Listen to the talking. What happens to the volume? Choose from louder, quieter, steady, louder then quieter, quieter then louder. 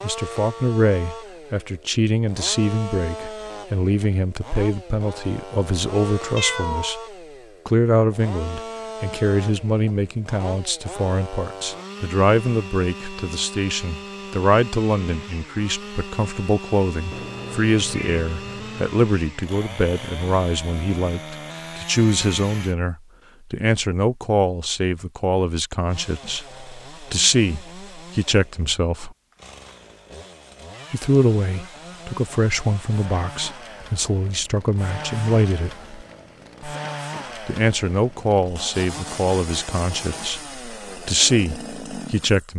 steady.